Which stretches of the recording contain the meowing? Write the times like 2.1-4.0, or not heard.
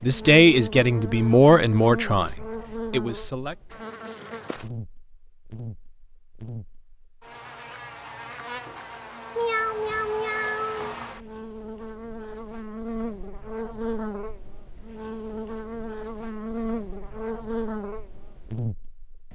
9.3-11.1.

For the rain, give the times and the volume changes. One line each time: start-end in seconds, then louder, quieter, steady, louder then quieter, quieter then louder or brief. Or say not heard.
not heard.